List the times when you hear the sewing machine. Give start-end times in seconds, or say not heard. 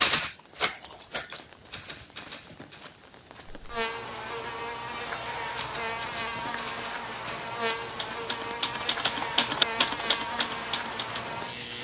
not heard.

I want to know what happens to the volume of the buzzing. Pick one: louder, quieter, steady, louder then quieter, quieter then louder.
steady.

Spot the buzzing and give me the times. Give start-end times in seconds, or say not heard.
3.5-11.7.